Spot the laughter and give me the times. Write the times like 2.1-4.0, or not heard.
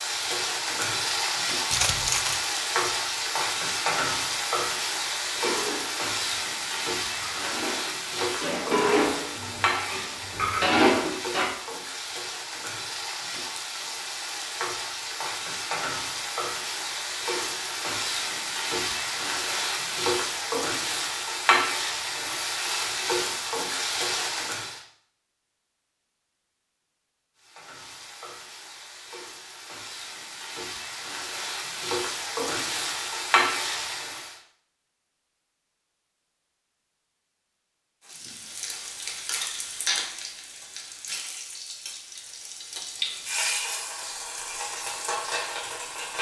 not heard.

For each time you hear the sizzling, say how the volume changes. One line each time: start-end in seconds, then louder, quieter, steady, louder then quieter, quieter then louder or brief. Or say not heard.
0.0-24.8 quieter then louder
27.4-34.4 louder
38.0-46.1 quieter then louder.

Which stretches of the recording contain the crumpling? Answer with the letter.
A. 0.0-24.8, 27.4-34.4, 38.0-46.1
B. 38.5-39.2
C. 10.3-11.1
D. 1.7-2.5
D.